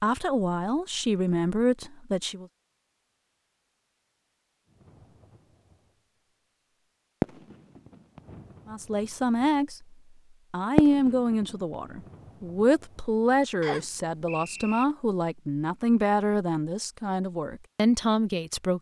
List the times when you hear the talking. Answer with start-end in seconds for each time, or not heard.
0.0-2.5, 8.7-9.8, 10.5-18.7.